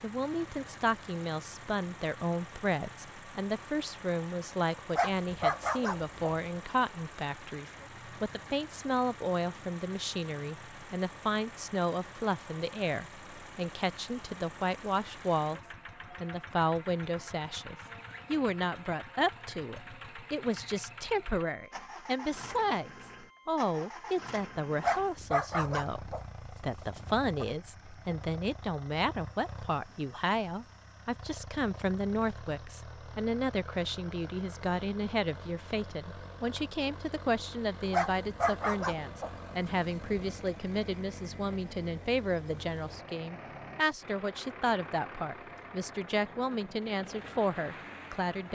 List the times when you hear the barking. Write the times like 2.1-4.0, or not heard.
5.0-6.4, 24.8-27.4, 37.9-40.4.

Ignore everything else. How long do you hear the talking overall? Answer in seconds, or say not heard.
48 s.